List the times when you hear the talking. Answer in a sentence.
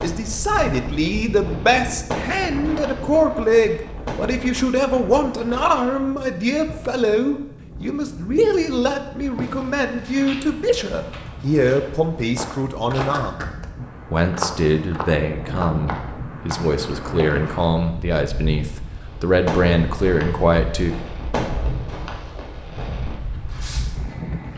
The talking can be heard from 0.0 to 13.5 s and from 14.1 to 20.9 s.